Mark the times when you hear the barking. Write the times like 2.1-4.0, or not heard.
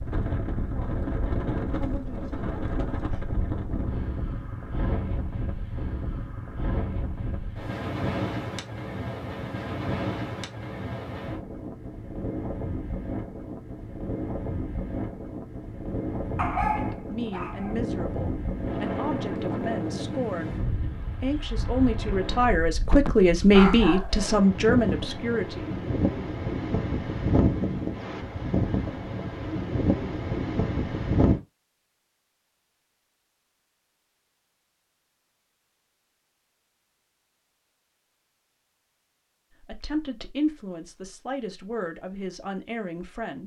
16.4-17.8, 22.9-24.3.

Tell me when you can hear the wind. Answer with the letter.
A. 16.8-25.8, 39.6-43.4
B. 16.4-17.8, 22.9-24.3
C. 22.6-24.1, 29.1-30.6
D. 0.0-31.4
D.